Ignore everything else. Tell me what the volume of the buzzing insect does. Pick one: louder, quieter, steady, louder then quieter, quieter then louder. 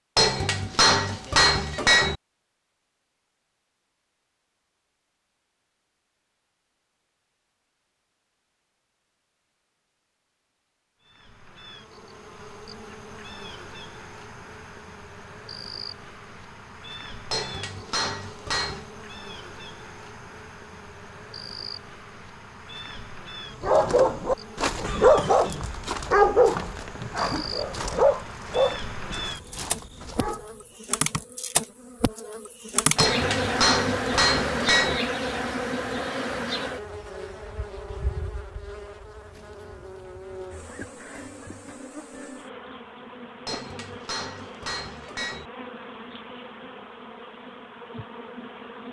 louder then quieter.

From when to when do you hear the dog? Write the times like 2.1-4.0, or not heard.
23.6-30.5.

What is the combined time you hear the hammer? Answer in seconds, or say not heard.
8 s.